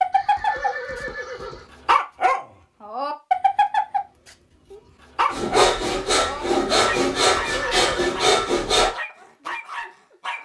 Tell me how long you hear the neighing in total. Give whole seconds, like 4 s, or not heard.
2 s.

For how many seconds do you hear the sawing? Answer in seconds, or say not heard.
4 s.